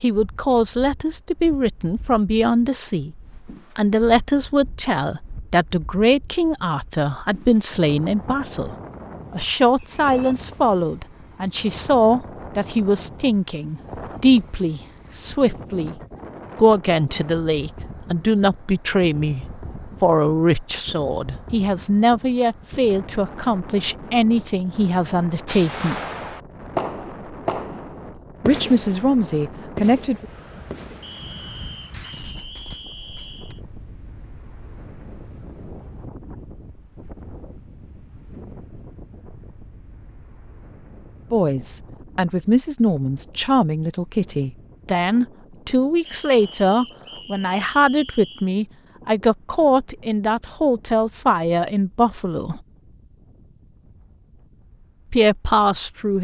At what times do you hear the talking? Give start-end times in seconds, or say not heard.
0.0-3.1, 3.8-15.9, 16.6-26.0, 28.4-30.2, 41.3-52.6, 55.1-56.1.